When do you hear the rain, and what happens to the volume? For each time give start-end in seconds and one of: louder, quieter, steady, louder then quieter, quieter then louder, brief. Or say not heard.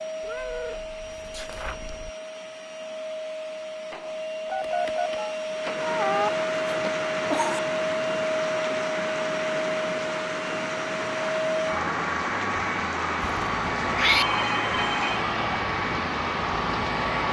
5.5-17.2 steady.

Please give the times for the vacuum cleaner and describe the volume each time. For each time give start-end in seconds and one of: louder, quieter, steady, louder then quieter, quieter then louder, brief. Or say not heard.
0.0-17.2 louder.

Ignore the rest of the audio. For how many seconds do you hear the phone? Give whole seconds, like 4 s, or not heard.
2 s.